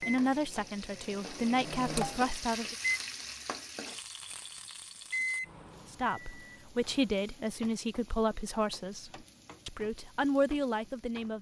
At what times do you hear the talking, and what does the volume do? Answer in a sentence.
You can hear the talking briefly from 0.1 to 2.8 s; and from 5.9 to 11.3 s, getting quieter then louder.